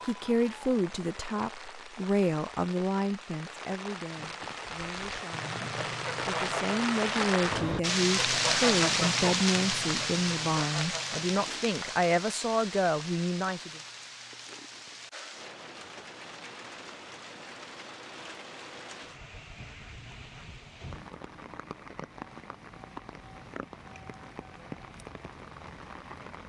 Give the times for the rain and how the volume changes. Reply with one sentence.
You can hear the rain from 0.0 to 26.4 s, getting louder then quieter.